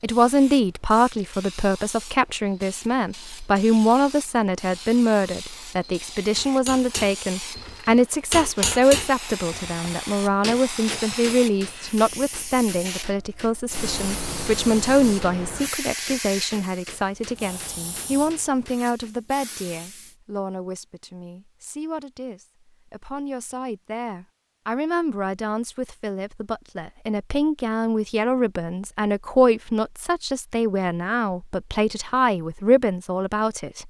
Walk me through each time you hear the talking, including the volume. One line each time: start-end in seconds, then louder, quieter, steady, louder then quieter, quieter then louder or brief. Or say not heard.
0.0-33.8 quieter then louder.